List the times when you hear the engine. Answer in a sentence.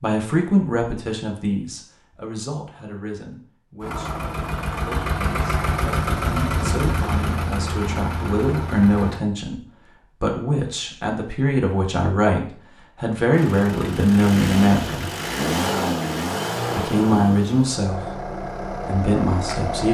You can hear the engine from 3.8 to 9.2 s and from 13.3 to 19.8 s.